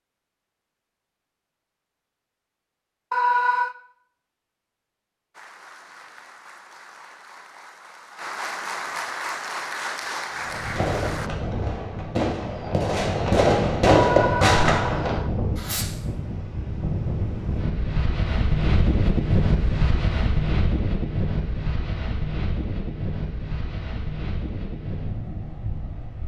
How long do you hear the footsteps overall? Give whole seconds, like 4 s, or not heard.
not heard.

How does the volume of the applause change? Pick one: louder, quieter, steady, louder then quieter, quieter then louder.
louder.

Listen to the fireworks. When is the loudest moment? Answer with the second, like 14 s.
14 s.